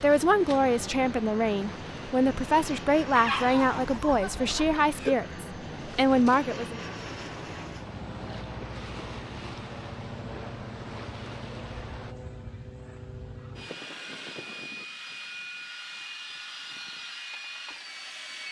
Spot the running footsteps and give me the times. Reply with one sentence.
The running footsteps can't be heard in this clip.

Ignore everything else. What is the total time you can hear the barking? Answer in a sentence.
The barking can be heard for 2 seconds in total.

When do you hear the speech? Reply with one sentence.
You can hear the speech from 0.0 to 6.8 s.